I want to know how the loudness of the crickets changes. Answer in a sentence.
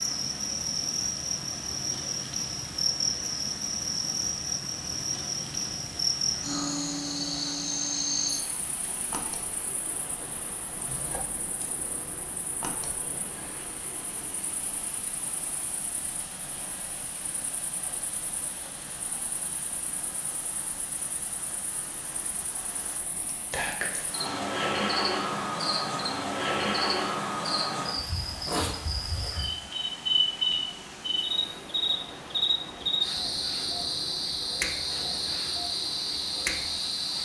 The loudness of the crickets goes down, then up.